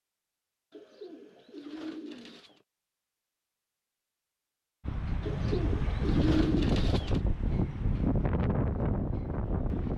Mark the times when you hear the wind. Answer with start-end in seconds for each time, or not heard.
4.8-9.9.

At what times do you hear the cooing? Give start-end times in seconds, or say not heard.
0.7-2.6, 5.2-7.2.